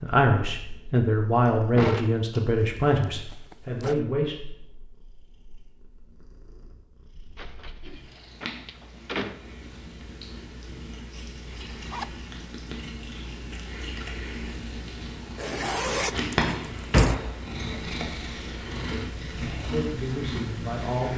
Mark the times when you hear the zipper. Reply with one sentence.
The zipper can be heard from 2.5 to 4.0 s, from 11.7 to 12.2 s and from 15.3 to 17.1 s.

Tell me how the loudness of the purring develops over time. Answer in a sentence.
The volume of the purring goes up.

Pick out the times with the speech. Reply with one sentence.
The speech can be heard from 0.0 to 4.3 s and from 19.6 to 21.1 s.